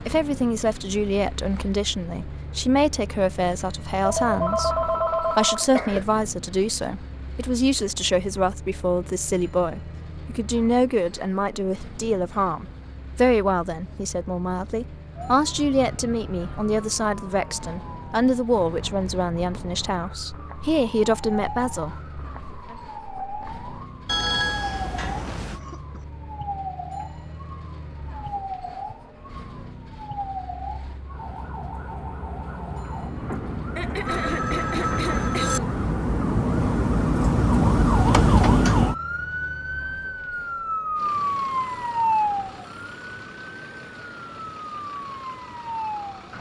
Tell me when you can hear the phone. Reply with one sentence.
You can hear the phone from 4.0 to 5.7 s, from 24.1 to 25.6 s and from 34.0 to 35.6 s.